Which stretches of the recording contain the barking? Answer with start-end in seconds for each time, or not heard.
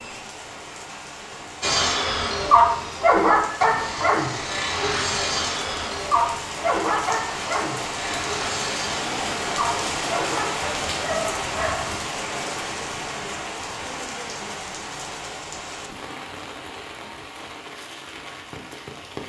1.6-12.1.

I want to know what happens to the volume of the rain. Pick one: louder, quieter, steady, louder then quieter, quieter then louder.
louder then quieter.